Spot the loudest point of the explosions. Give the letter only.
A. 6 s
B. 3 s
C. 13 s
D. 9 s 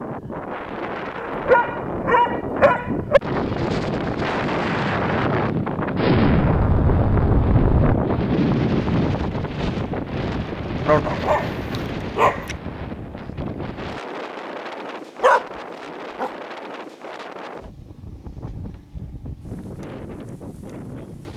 A.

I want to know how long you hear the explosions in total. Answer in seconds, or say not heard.
2 s.